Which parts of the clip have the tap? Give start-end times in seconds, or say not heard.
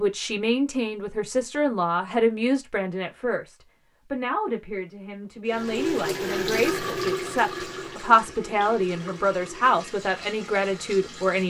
5.5-11.4.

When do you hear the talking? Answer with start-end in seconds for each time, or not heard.
0.0-11.4.